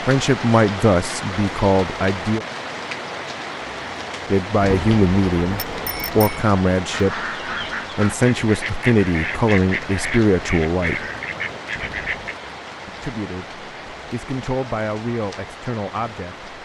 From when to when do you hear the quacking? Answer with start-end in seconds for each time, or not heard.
6.9-12.3.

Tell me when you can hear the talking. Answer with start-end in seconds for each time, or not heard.
0.0-2.5, 4.2-7.2, 8.0-11.1, 12.8-16.5.